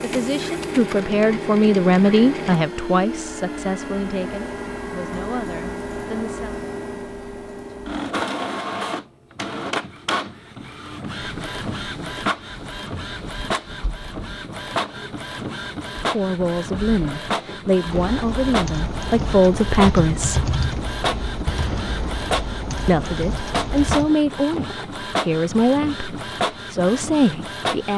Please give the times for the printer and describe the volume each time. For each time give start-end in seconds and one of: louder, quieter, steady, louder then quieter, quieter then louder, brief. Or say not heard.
0.0-27.9 steady.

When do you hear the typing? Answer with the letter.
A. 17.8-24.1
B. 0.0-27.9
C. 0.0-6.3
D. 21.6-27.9
A.